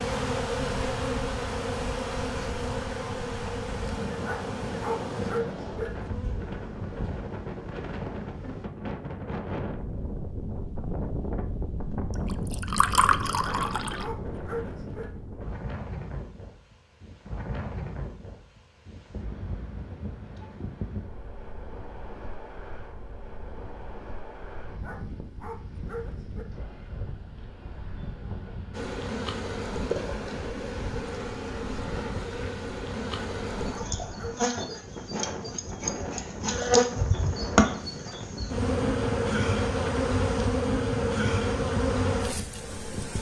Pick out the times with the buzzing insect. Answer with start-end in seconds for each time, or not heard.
0.0-8.7, 28.7-43.1.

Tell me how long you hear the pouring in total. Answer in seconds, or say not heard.
2 s.